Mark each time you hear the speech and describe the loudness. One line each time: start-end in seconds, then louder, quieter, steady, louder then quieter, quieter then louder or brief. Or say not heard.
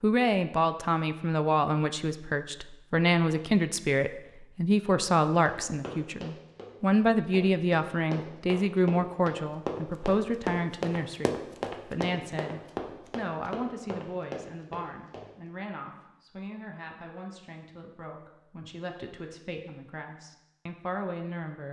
0.0-21.6 quieter.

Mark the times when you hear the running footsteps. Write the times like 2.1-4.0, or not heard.
5.5-15.2.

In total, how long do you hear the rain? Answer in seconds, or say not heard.
not heard.